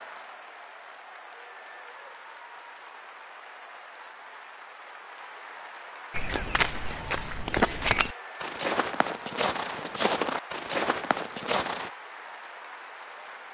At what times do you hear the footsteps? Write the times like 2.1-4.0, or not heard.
6.1-11.9.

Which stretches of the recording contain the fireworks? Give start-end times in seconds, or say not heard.
not heard.